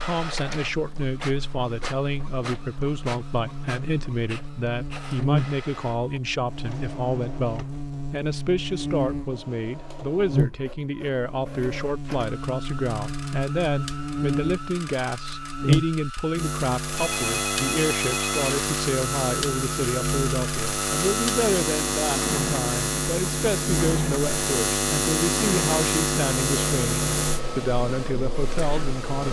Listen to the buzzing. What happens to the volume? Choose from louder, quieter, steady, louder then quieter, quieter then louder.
louder.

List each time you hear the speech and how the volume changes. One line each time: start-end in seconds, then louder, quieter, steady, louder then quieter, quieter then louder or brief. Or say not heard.
0.0-29.2 steady.